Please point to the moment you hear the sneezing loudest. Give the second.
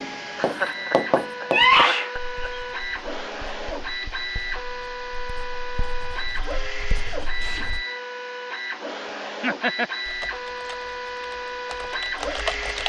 2 s.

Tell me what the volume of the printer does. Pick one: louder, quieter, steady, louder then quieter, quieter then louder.
steady.